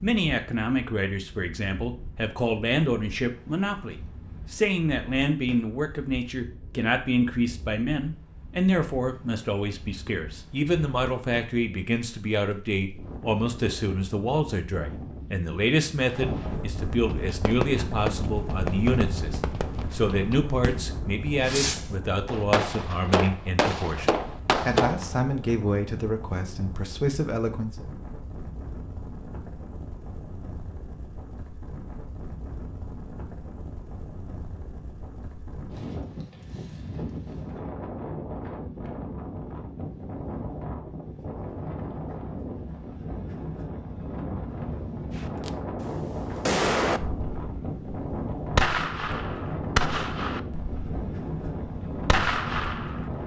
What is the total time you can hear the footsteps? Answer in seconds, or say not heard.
not heard.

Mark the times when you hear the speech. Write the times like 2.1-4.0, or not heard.
0.0-27.9.